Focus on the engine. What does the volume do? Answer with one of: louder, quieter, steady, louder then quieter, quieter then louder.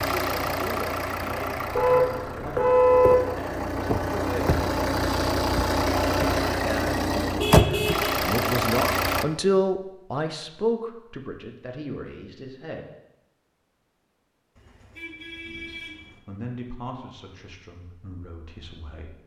louder.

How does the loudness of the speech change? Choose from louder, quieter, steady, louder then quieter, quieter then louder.
louder then quieter.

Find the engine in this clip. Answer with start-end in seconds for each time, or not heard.
0.0-9.2.